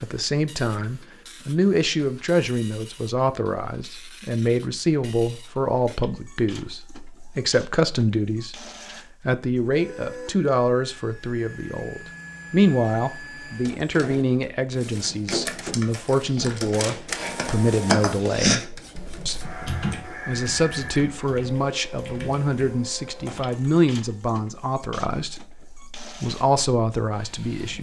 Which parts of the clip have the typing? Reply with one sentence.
You can hear the typing from 15.1 to 23.8 s.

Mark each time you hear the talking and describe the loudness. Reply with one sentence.
The talking can be heard from 0.0 to 27.7 s, at a steady volume.